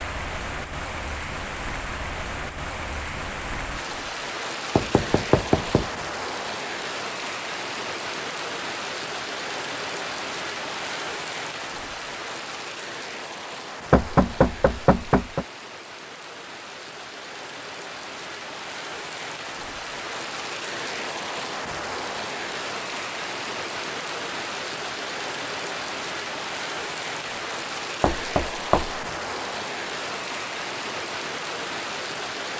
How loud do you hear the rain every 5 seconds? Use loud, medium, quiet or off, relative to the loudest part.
loud, loud, loud, medium, loud, loud, loud.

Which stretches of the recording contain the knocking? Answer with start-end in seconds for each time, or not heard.
4.8-5.9, 13.9-15.4, 28.0-29.1.